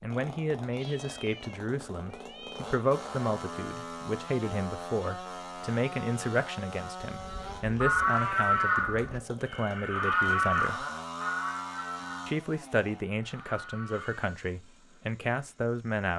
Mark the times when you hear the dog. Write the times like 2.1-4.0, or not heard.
not heard.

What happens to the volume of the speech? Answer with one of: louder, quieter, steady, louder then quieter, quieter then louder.
steady.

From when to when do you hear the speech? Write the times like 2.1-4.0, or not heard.
0.0-10.8, 12.2-16.1.